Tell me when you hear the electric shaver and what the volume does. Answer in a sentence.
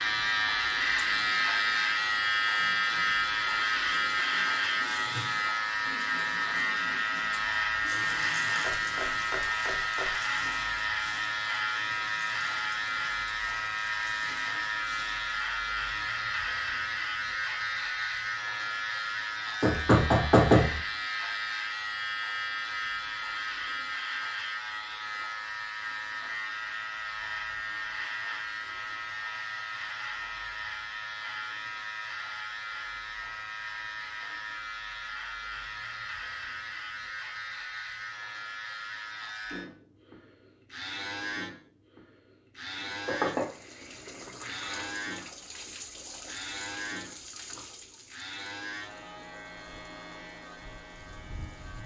You can hear the electric shaver from 0.0 to 51.8 s, getting quieter.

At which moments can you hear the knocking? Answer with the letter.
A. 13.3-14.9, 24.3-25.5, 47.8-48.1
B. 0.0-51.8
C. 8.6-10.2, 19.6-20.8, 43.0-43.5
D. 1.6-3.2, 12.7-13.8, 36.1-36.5
C.